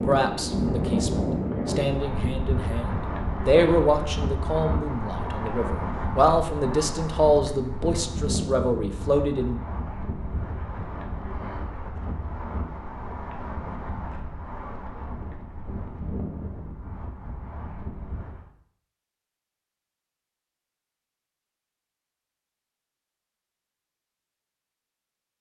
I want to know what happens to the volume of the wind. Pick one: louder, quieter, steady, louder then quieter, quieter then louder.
quieter.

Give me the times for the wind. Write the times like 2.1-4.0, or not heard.
0.0-18.5.